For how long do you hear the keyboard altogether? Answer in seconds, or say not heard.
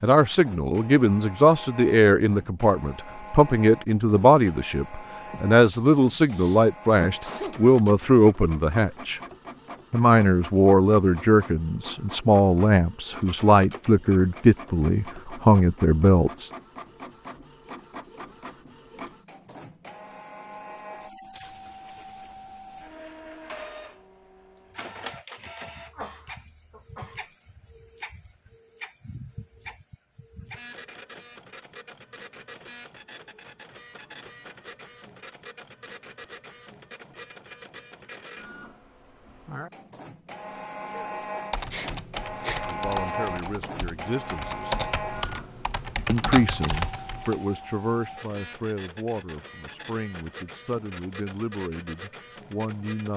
6 s.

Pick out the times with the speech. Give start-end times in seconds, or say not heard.
0.0-9.2, 9.9-16.5, 42.6-44.8, 46.0-53.1.